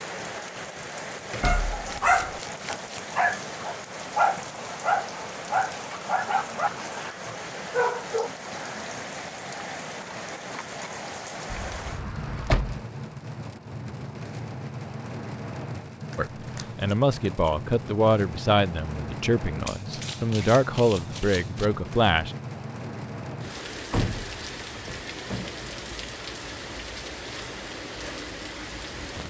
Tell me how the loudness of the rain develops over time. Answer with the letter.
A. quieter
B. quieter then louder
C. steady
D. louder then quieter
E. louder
C.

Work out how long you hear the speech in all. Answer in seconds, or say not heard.
6 s.